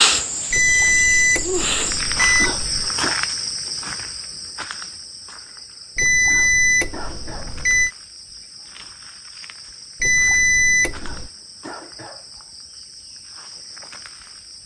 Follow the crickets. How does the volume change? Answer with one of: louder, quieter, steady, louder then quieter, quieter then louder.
quieter.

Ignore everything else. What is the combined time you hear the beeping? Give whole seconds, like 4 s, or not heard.
6 s.